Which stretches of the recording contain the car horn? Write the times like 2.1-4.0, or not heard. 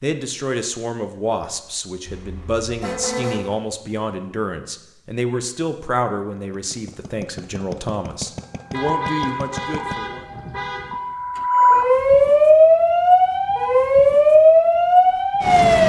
2.0-3.5, 8.7-10.9.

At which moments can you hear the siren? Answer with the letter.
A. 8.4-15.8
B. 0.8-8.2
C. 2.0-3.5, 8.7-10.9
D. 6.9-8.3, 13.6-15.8
A.